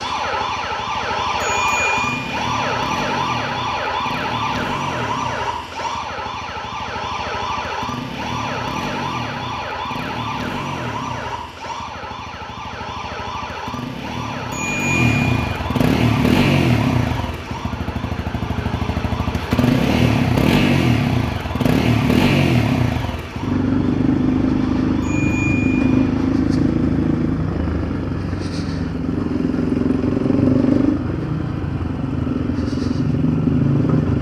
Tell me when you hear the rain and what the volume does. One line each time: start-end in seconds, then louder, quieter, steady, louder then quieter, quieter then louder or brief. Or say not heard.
not heard.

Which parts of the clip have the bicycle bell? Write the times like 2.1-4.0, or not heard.
1.4-2.4, 14.5-15.4, 25.0-25.9.